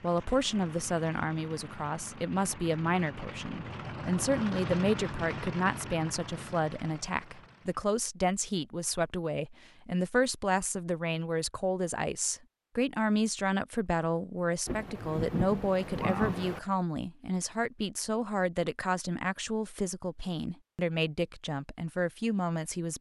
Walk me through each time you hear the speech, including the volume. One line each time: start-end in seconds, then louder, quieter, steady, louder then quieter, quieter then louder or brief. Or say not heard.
0.0-22.9 steady.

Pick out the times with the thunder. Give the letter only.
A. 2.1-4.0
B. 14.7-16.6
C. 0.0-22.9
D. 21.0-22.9
B.